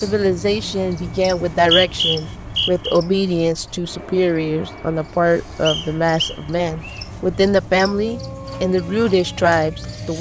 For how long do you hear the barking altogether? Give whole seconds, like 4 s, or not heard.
not heard.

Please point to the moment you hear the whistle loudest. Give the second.
2 s.